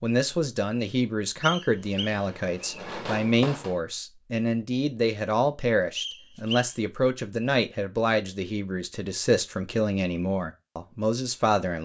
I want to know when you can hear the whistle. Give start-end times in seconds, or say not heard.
1.4-2.9, 6.0-6.8.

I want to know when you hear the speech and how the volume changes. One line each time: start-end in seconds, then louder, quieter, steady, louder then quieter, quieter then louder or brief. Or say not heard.
0.0-11.7 steady.